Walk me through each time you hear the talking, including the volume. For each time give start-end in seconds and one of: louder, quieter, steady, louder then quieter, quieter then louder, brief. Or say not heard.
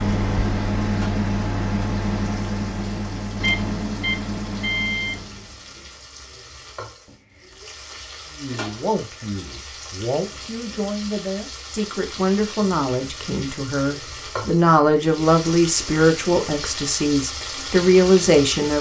8.3-18.7 louder.